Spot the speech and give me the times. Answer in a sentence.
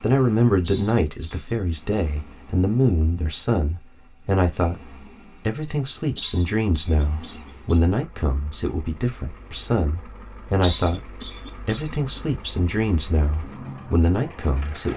You can hear the speech from 0.0 to 4.8 s and from 5.5 to 14.9 s.